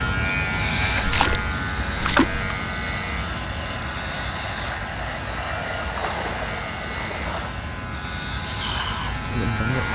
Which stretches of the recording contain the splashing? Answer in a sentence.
The splashing can be heard from 0.8 to 2.5 s and from 5.8 to 7.5 s.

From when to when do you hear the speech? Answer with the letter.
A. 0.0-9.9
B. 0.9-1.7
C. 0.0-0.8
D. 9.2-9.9
D.